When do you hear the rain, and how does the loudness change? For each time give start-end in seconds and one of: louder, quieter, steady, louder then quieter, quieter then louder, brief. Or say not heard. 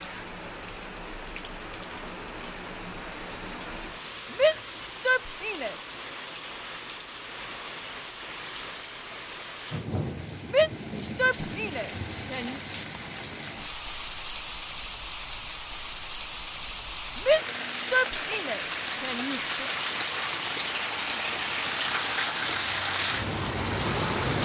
0.0-24.3 louder.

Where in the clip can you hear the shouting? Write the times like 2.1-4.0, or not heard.
4.3-5.8, 10.4-12.6, 17.1-19.6.